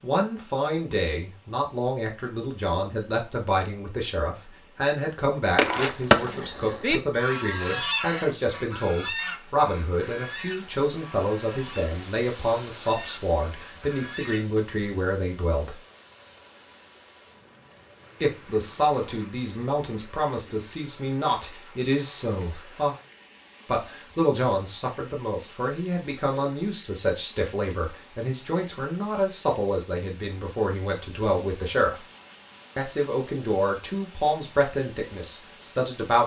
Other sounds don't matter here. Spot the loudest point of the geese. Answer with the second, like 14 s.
6 s.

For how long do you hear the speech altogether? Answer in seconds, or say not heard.
32 s.